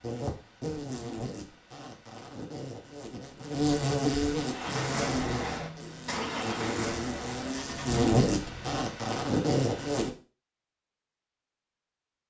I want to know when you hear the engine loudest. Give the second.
5 s.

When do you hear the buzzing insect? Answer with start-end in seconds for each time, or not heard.
0.0-10.1.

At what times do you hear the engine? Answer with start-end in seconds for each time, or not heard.
4.5-8.8.